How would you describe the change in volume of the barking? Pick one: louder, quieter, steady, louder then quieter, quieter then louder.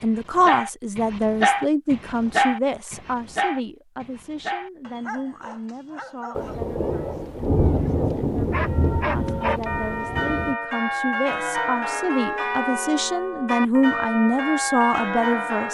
quieter then louder.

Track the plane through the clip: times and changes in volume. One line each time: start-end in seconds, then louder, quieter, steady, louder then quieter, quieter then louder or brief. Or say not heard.
not heard.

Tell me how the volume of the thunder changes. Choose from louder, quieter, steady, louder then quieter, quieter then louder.
louder then quieter.